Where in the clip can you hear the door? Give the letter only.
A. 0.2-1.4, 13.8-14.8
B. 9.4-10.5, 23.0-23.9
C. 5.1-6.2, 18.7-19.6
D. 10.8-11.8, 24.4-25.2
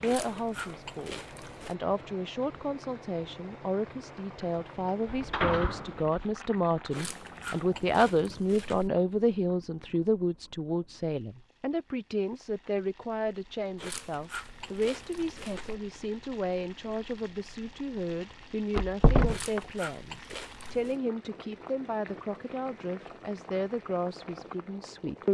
C.